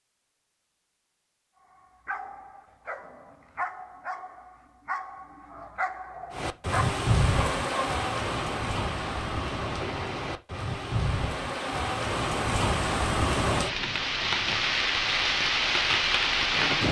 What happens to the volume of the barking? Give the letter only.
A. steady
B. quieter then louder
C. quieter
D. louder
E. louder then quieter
D.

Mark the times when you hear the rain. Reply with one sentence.
You can hear the rain from 6.3 to 16.8 s.